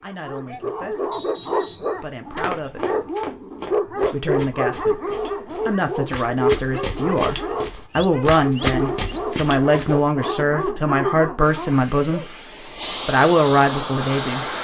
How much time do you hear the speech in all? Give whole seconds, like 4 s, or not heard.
13 s.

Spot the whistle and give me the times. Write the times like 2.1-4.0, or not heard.
1.1-1.9.